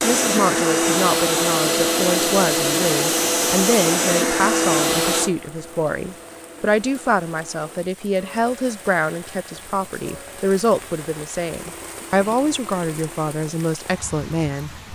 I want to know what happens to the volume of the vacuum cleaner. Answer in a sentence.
The volume of the vacuum cleaner goes down.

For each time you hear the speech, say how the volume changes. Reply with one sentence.
You can hear the speech from 0.0 to 14.8 s, at a steady volume.